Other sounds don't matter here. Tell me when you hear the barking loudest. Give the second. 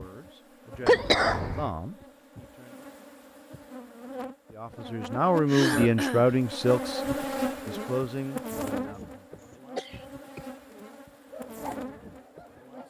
12 s.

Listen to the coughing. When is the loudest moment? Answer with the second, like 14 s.
1 s.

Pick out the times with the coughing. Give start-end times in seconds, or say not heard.
0.8-1.7, 5.5-6.3, 9.8-10.4.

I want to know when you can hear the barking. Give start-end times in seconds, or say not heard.
11.1-12.8.